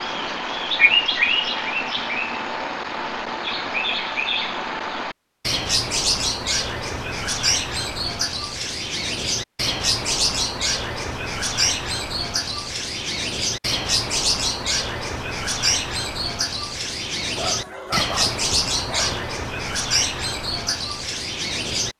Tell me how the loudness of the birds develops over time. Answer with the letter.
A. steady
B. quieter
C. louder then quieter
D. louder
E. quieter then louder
A.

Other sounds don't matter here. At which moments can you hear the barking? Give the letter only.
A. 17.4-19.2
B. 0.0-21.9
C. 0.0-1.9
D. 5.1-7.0
A.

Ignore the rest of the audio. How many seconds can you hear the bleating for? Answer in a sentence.
The bleating can't be heard in this clip.